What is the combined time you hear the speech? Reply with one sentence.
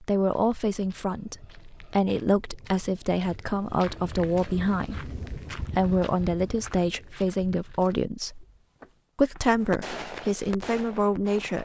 You can hear the speech for 11 seconds altogether.